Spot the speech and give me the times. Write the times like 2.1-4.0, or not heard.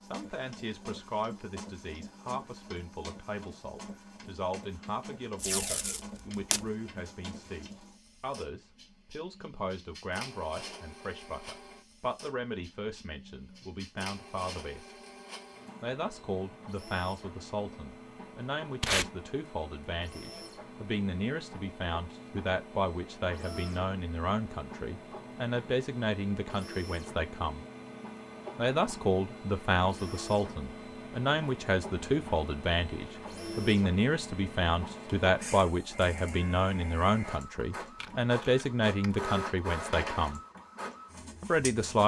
0.0-14.9, 15.8-27.6, 28.6-40.4, 41.4-42.0.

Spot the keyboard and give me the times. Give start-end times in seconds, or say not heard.
not heard.